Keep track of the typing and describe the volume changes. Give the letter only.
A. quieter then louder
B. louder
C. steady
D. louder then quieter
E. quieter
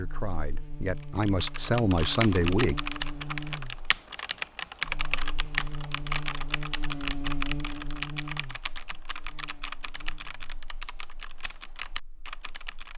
E.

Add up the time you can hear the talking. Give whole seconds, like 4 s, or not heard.
3 s.